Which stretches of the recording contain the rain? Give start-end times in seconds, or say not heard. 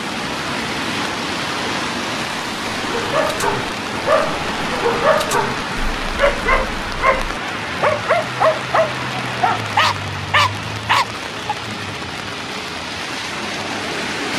0.0-14.3.